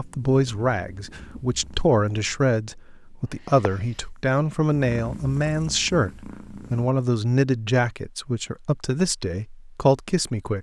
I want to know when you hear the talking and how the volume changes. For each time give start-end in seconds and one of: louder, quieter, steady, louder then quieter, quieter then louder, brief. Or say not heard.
0.0-10.5 steady.